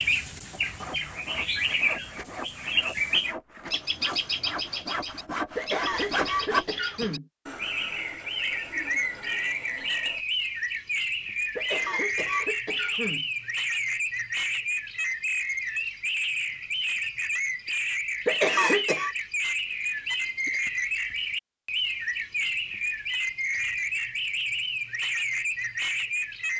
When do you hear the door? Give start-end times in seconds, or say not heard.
not heard.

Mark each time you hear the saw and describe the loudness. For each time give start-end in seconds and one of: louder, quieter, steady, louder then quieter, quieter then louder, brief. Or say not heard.
0.5-10.2 louder then quieter.